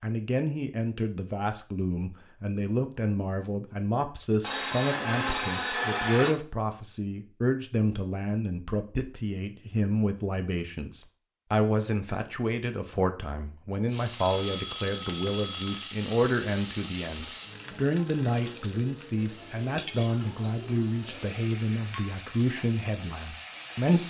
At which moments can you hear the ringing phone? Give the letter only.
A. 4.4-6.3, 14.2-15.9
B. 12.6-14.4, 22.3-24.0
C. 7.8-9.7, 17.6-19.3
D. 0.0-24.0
A.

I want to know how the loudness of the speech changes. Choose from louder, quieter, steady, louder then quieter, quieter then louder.
steady.